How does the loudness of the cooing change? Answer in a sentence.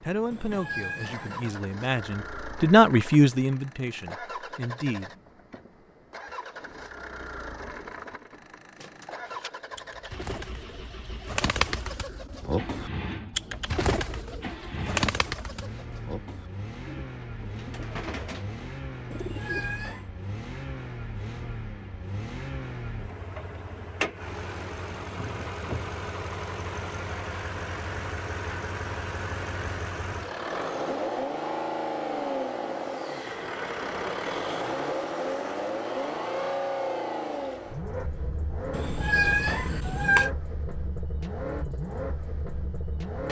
The loudness of the cooing goes up, then down.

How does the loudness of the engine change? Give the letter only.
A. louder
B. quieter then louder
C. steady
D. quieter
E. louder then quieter
A.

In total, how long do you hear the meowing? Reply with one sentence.
The meowing can be heard for 4 seconds in total.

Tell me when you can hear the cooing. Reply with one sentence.
The cooing can be heard from 8.8 to 19.7 s.